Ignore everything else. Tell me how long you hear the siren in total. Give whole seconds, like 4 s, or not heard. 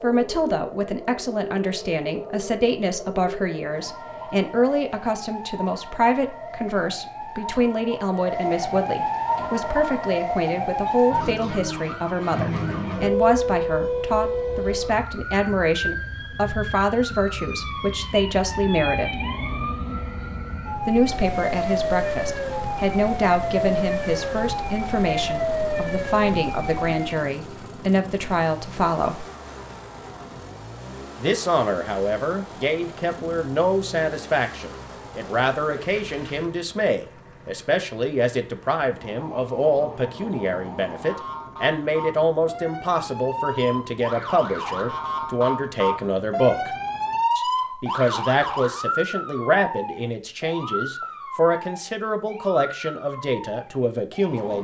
43 s.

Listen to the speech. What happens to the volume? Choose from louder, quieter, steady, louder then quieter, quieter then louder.
steady.